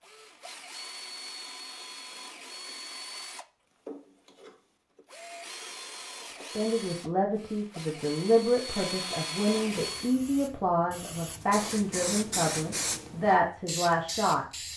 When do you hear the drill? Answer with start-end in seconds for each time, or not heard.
0.0-10.2.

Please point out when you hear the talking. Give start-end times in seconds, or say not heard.
6.3-14.4.